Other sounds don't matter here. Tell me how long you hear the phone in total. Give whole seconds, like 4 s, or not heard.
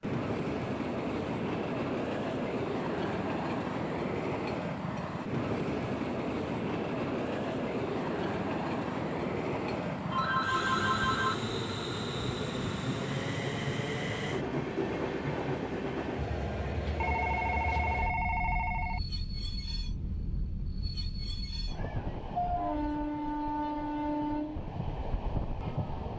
3 s.